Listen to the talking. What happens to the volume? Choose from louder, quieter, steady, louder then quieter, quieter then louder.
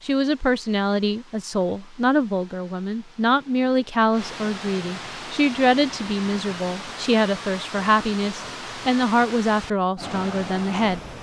steady.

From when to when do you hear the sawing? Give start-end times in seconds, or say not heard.
not heard.